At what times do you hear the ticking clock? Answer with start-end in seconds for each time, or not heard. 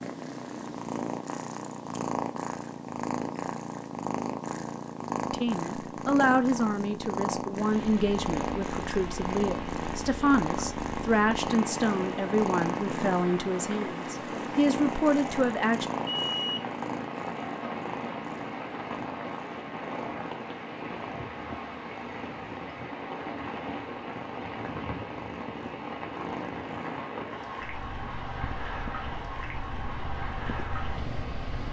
not heard.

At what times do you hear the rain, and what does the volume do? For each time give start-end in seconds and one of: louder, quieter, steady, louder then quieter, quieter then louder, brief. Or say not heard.
7.5-31.6 steady.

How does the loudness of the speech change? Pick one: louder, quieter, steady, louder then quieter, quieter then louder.
steady.